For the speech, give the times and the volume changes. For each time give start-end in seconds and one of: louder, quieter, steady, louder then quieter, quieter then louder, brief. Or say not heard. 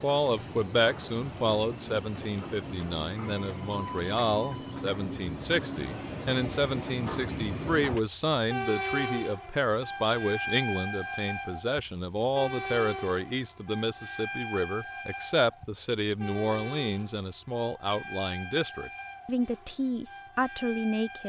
0.0-21.2 steady.